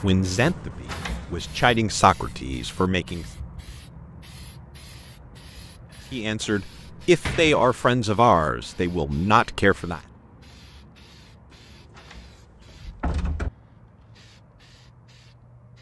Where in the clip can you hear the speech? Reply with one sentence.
The speech can be heard from 0.0 to 3.2 s and from 6.1 to 10.0 s.